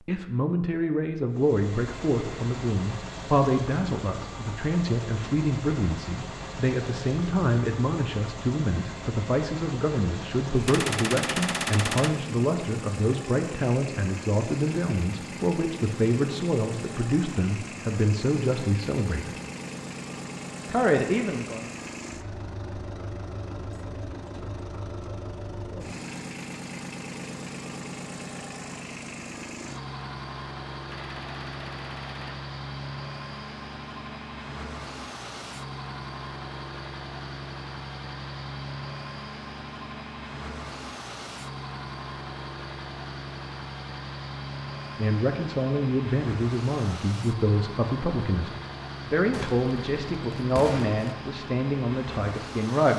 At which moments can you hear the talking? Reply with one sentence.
The talking can be heard from 0.0 to 19.4 s, from 20.6 to 21.7 s and from 45.0 to 52.9 s.